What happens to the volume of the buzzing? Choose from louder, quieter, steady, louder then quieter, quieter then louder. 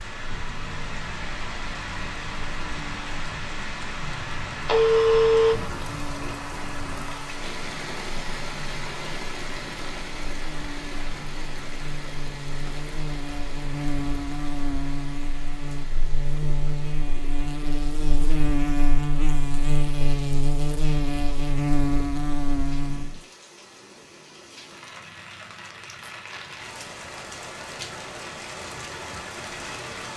louder.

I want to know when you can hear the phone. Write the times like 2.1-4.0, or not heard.
4.7-5.5.